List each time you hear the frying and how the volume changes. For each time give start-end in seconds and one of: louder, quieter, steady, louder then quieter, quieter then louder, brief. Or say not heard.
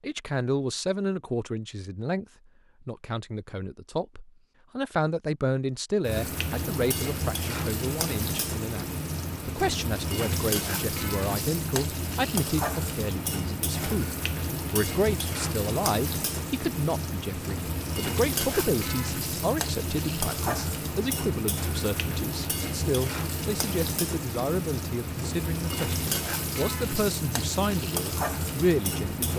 6.0-29.3 steady.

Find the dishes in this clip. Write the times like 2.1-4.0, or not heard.
not heard.